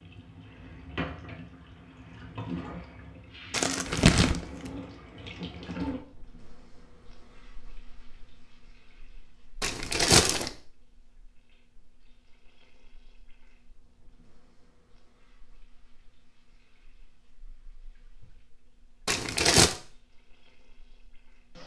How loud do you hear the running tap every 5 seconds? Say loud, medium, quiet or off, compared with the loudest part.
loud, loud, quiet, quiet, quiet.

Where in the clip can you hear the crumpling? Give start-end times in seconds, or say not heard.
3.5-4.5, 9.6-10.5, 19.1-19.8.